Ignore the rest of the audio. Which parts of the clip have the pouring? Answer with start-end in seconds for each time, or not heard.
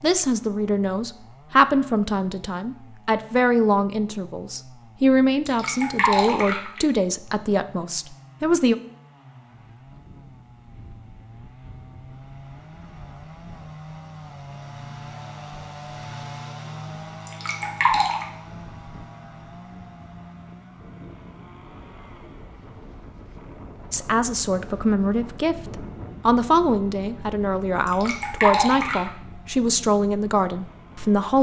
5.5-6.8, 17.2-18.2, 27.9-29.1.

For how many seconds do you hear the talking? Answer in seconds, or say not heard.
16 s.